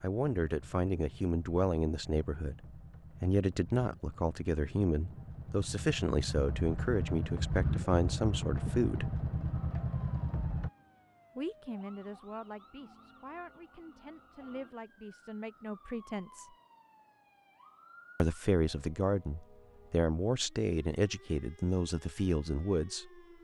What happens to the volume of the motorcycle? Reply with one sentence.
The volume of the motorcycle goes up.